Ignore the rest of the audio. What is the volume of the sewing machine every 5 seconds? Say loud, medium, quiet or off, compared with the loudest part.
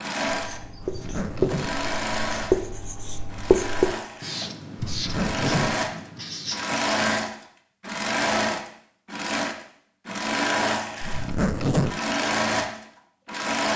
medium, loud, loud.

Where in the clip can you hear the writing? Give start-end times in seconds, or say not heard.
0.3-6.9.